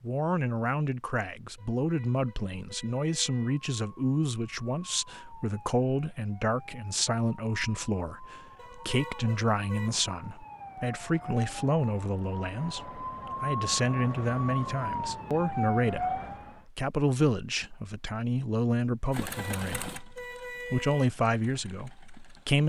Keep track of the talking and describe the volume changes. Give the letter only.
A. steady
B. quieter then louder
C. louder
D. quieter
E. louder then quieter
A.